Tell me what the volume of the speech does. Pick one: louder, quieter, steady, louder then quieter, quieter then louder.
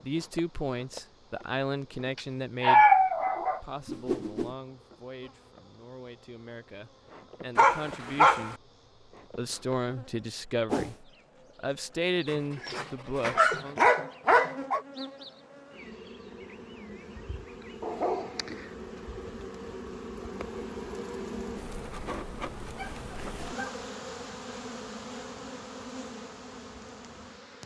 quieter then louder.